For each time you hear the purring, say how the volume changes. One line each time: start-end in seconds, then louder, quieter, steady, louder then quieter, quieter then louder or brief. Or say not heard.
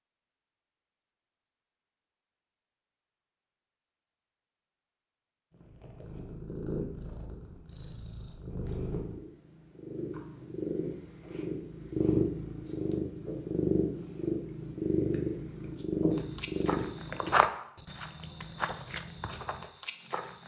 5.6-17.3 louder.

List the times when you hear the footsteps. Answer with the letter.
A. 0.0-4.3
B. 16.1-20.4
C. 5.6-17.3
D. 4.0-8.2
B.